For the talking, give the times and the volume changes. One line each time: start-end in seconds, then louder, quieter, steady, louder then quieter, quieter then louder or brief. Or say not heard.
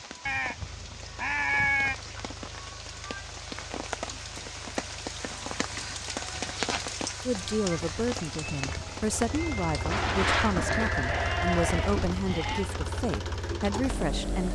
7.2-14.5 steady.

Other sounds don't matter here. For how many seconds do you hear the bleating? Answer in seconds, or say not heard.
6 s.